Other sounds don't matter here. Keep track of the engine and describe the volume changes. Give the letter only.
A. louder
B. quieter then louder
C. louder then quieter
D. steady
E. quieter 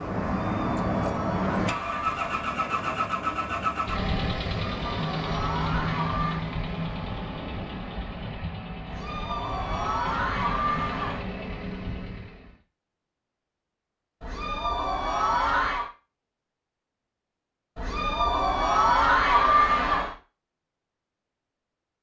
E.